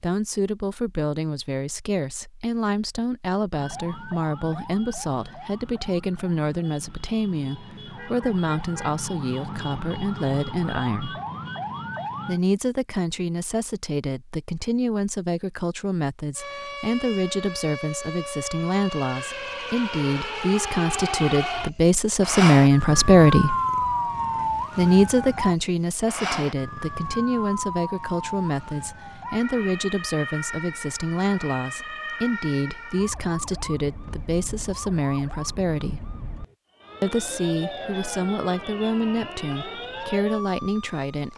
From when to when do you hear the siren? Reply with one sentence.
The siren can be heard from 3.5 to 12.4 s and from 16.4 to 41.3 s.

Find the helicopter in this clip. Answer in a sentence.
You can't hear the helicopter here.